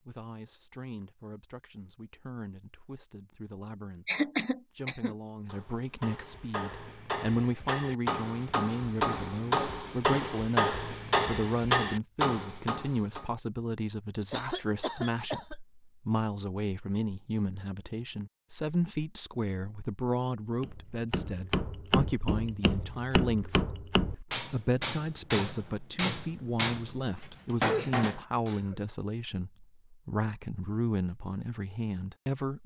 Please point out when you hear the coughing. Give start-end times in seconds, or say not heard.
4.0-5.2, 14.3-15.6, 27.6-28.8.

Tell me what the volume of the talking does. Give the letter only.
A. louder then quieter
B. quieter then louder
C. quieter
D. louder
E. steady
D.